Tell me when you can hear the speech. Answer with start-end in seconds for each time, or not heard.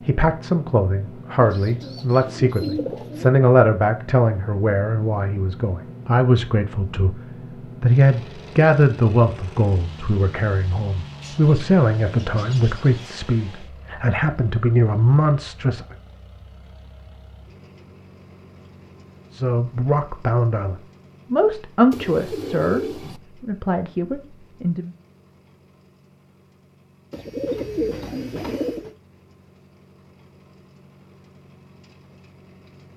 0.1-15.8, 19.3-24.9.